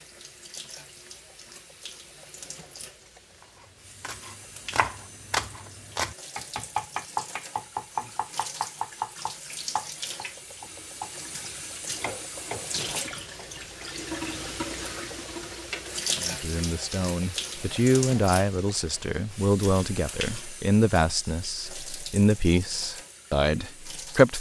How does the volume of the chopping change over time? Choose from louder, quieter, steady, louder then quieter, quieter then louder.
quieter.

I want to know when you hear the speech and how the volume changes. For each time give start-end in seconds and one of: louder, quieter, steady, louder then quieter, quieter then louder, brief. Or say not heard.
16.2-24.3 steady.